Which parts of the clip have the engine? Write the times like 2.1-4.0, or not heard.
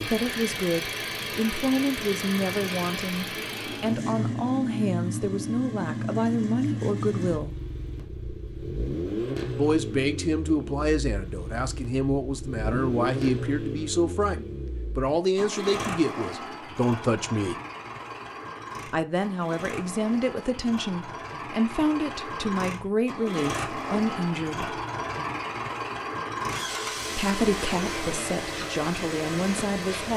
0.0-30.1.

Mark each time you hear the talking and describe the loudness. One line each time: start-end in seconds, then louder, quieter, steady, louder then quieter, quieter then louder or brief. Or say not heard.
0.0-7.5 steady
9.6-17.6 steady
18.9-24.8 steady
27.1-30.1 brief.